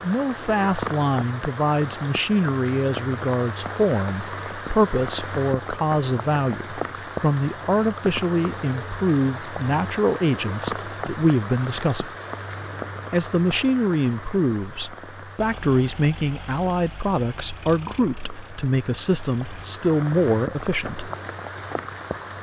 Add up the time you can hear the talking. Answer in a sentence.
The talking can be heard for 20 seconds in total.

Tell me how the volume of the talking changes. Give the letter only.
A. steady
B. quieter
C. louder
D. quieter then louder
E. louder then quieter
A.